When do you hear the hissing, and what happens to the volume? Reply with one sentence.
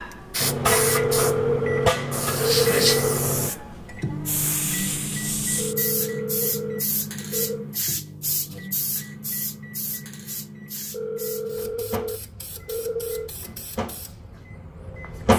The hissing can be heard from 0.0 to 15.3 s, getting quieter.